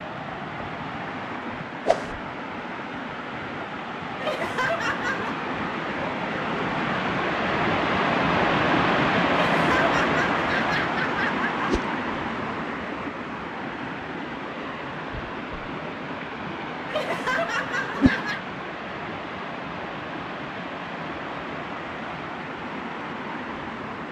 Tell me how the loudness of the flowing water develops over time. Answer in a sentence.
The volume of the flowing water goes up, then down.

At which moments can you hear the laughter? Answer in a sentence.
The laughter can be heard from 4.2 to 5.3 s, from 9.3 to 11.8 s and from 16.9 to 18.4 s.